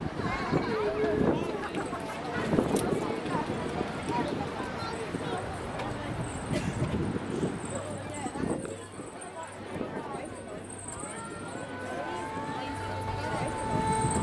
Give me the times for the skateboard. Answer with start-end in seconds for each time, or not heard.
not heard.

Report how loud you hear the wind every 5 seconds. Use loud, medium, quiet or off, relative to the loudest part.
loud, loud, medium.